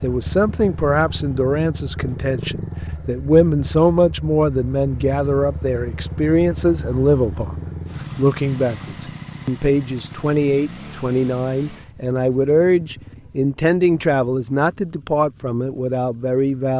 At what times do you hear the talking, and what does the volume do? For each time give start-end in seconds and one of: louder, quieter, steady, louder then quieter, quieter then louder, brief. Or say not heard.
0.0-16.7 steady.